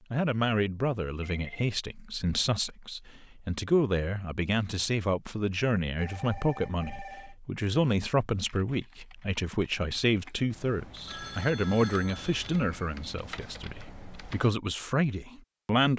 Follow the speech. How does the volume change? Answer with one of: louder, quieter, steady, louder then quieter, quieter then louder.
steady.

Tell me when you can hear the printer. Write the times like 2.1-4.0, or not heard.
not heard.